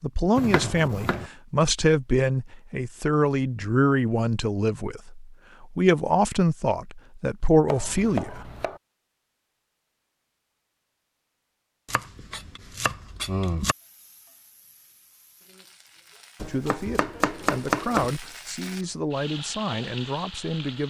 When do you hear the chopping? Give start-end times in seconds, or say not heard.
0.3-1.2, 7.7-8.8, 11.9-13.8, 16.4-18.1.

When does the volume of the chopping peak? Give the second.
18 s.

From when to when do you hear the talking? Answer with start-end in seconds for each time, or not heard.
0.0-8.5, 16.4-20.8.